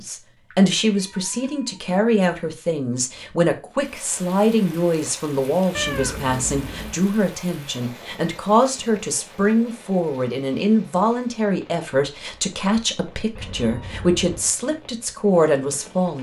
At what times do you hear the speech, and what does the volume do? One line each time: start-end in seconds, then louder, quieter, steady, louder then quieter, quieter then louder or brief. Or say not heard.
0.0-16.1 steady.